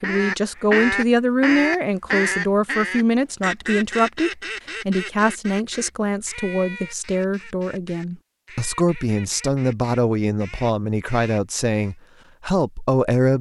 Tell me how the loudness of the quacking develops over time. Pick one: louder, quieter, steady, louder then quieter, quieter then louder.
quieter.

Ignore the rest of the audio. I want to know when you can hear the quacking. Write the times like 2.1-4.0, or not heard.
0.0-11.9.